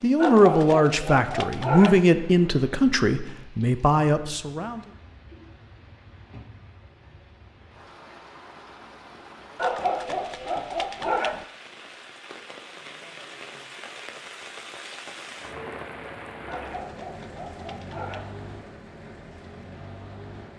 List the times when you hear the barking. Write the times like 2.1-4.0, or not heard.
0.2-2.0, 9.6-11.4, 16.4-18.4.